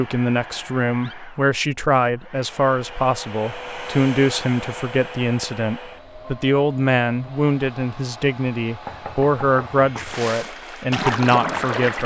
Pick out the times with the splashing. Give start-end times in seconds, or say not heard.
10.0-12.0.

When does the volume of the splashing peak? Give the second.
11 s.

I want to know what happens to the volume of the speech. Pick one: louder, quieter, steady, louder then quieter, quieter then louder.
steady.